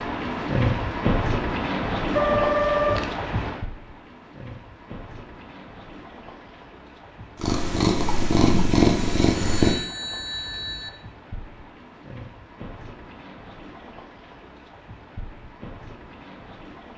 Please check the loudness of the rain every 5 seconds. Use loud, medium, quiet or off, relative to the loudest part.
loud, quiet, quiet, quiet.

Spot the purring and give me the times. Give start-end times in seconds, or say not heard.
7.3-9.8.